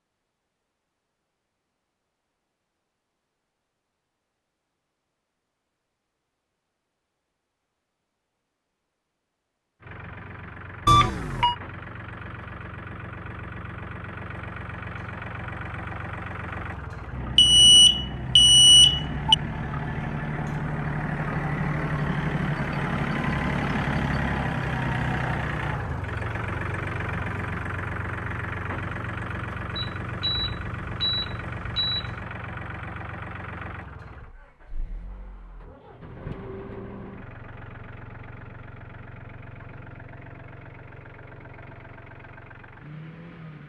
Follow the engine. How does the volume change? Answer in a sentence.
The loudness of the engine goes up, then down.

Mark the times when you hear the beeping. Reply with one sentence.
You can hear the beeping from 10.8 to 11.6 s, from 17.4 to 19.4 s and from 29.8 to 32.2 s.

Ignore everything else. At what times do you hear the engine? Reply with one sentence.
The engine can be heard from 9.8 to 43.6 s.